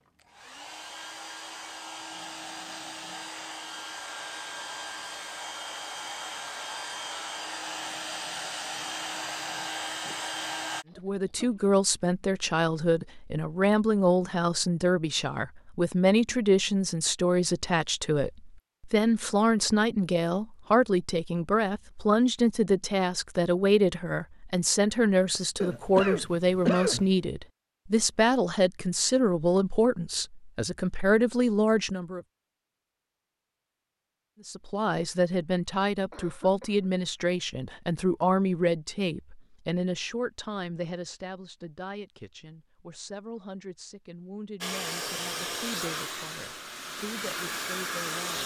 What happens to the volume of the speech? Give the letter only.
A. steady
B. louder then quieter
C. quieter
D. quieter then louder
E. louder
C.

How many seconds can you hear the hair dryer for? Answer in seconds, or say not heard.
15 s.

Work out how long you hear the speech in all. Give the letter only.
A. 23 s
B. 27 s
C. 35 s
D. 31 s
C.